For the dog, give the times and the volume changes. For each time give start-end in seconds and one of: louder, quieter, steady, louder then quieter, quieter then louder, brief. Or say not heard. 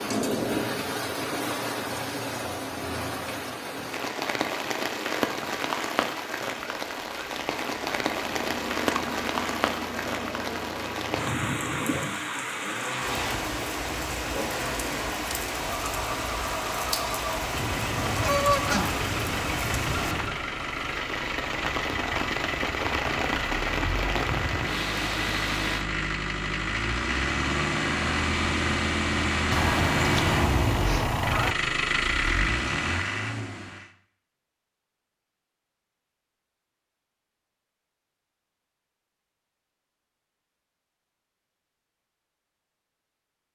not heard.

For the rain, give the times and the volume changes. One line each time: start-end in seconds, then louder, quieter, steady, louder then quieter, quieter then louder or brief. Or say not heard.
0.0-25.9 steady.